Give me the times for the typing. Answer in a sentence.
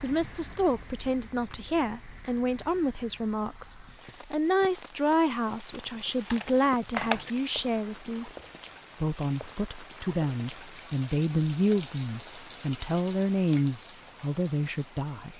The typing can be heard from 6.0 to 7.3 s.